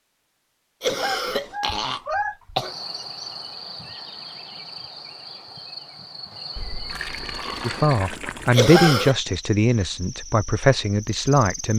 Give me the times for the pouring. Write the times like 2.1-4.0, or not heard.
6.5-8.6.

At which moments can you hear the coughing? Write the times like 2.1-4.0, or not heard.
0.8-2.7, 8.5-9.2.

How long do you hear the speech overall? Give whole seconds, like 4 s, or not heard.
4 s.